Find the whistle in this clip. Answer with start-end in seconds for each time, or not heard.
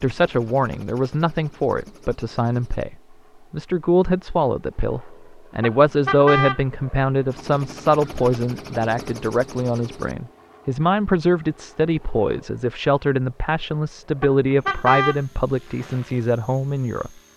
not heard.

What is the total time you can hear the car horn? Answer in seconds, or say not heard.
2 s.